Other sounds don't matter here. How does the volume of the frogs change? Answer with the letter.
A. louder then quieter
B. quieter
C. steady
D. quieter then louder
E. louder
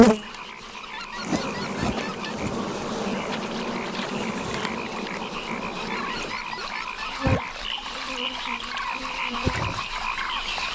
E.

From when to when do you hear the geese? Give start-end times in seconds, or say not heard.
0.8-2.4, 5.8-7.2.